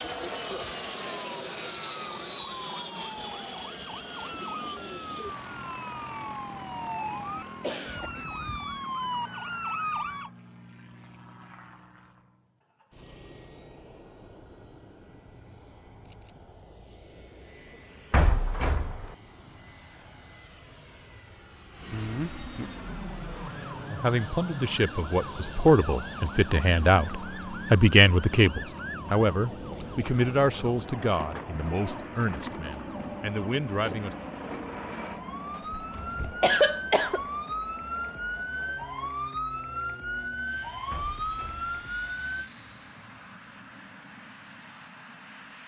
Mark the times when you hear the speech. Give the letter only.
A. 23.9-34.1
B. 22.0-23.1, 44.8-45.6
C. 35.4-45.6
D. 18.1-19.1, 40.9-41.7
A.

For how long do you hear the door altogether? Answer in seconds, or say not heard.
2 s.